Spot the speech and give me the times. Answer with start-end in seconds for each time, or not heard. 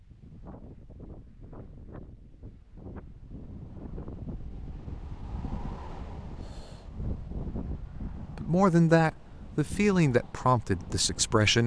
8.2-11.6.